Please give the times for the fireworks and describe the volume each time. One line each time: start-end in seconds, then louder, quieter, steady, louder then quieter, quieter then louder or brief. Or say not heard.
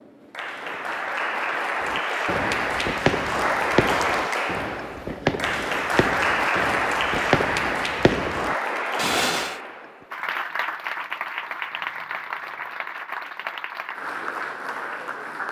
1.8-9.6 steady.